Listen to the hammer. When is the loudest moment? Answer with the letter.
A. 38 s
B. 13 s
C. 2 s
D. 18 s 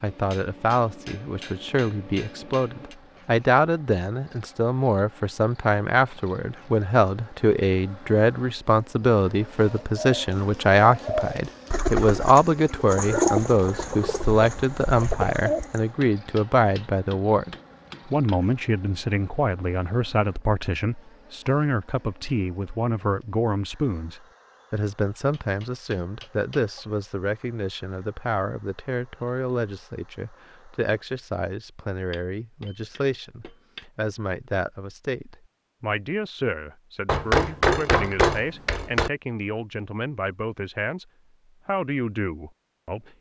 A.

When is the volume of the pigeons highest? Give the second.
13 s.